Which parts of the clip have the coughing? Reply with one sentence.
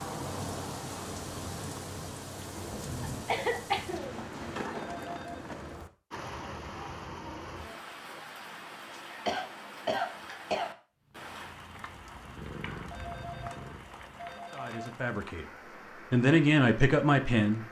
The coughing can be heard from 3.2 to 4.8 s and from 9.2 to 10.7 s.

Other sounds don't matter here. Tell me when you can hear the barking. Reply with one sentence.
You can't hear the barking here.